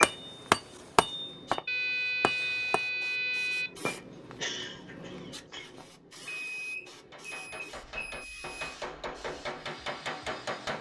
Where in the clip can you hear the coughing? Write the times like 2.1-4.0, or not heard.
3.9-5.8.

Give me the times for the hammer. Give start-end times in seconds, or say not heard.
0.0-2.8, 6.9-10.7.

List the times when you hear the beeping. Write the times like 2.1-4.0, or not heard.
1.6-3.7, 6.2-8.6.